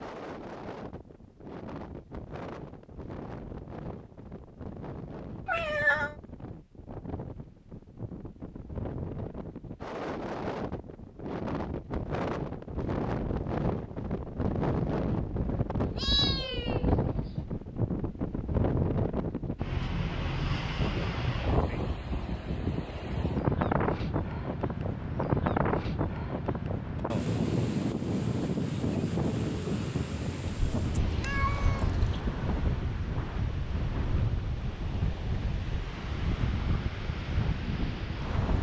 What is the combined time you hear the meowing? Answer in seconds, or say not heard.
4 s.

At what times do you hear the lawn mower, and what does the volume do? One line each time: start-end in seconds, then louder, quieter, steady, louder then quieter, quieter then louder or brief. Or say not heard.
not heard.